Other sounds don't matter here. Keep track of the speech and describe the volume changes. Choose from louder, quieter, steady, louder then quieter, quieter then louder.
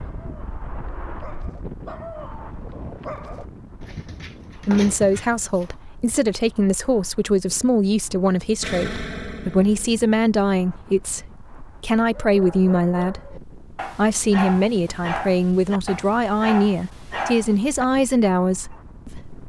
steady.